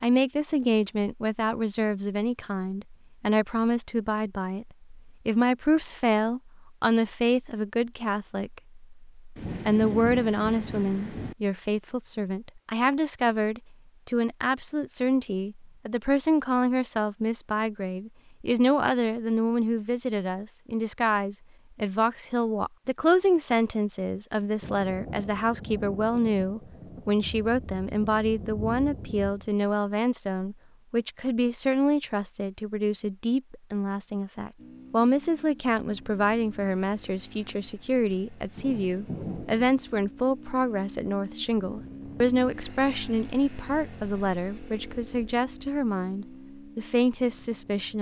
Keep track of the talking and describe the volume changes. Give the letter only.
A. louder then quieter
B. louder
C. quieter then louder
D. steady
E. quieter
D.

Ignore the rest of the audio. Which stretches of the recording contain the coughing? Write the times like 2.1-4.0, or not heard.
not heard.